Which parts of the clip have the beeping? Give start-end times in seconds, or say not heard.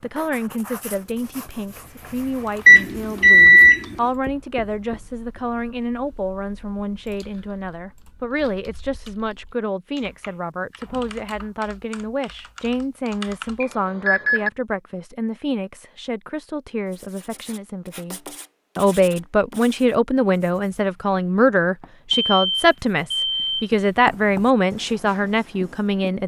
2.6-4.0, 13.6-14.5, 22.2-23.7.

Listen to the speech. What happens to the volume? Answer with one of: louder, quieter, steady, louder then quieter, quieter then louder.
louder.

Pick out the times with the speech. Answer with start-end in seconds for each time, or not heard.
0.0-26.2.